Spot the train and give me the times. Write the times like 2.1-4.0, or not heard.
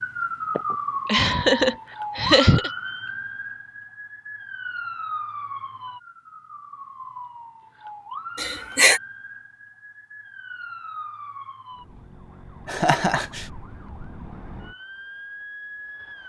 not heard.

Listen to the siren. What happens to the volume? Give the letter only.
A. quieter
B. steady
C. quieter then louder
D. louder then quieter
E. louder
A.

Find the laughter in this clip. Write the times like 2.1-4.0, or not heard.
0.6-2.7, 8.3-9.0, 12.7-13.4.